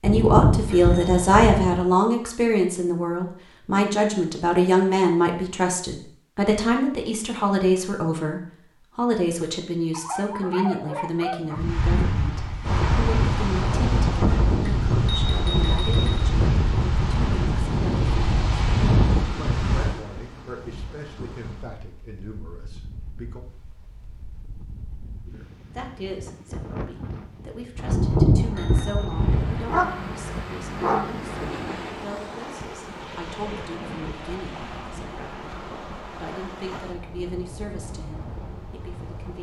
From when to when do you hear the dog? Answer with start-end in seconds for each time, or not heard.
9.9-11.7, 29.6-31.8.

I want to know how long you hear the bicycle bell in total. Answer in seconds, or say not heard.
5 s.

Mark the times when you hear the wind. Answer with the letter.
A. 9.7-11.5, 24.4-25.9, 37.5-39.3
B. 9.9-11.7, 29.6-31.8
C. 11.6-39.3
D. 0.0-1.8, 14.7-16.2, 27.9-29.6
C.